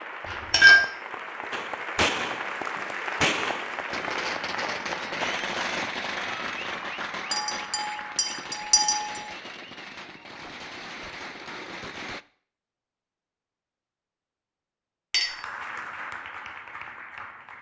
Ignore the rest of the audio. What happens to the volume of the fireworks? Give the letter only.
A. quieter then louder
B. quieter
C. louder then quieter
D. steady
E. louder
B.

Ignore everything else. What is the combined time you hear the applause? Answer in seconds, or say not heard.
11 s.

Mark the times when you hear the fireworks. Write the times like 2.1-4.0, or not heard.
1.5-12.2.